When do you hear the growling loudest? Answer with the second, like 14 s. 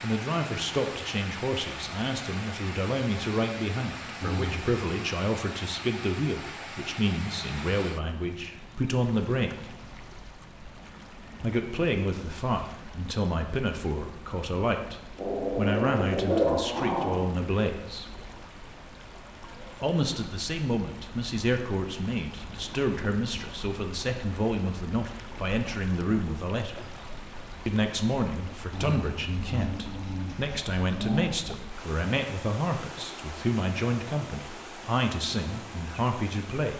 16 s.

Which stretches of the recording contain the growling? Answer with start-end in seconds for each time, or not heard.
4.2-4.8, 15.2-17.2, 28.7-31.4.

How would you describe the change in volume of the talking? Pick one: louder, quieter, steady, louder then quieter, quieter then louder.
steady.